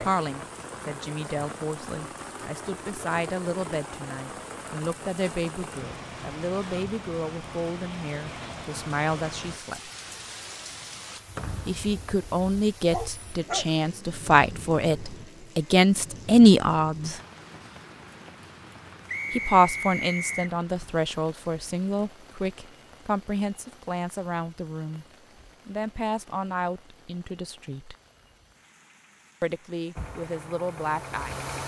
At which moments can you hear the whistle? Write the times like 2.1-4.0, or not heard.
11.3-12.2, 19.1-20.6.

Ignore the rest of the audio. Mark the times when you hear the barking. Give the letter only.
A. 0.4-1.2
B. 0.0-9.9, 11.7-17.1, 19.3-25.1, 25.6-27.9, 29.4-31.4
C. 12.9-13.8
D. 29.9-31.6
C.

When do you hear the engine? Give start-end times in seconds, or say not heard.
29.9-31.6.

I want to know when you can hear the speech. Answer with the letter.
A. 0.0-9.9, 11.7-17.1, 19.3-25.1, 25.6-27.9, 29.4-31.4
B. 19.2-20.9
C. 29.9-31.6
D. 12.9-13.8
A.